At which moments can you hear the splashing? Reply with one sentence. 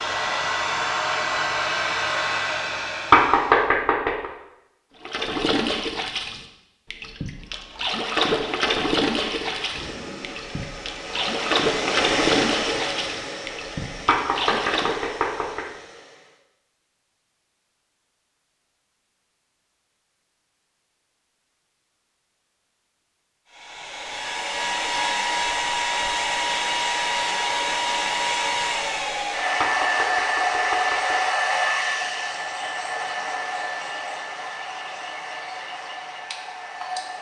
You can hear the splashing from 5.0 to 15.2 s.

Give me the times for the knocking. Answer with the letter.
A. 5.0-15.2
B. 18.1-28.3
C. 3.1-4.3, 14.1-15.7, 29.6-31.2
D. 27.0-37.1
C.